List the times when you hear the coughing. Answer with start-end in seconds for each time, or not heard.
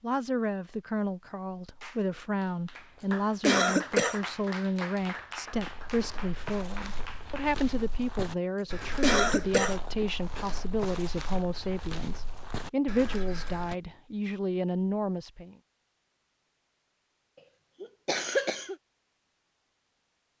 3.0-4.2, 8.6-9.8, 17.8-18.8.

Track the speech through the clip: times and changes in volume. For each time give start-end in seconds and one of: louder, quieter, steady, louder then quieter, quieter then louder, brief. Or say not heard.
0.0-15.6 steady.